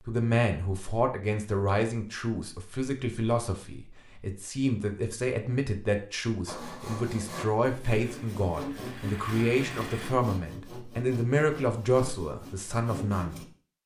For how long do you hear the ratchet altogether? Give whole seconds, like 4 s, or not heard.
not heard.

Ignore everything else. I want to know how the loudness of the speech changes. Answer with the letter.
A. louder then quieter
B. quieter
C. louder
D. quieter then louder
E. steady
E.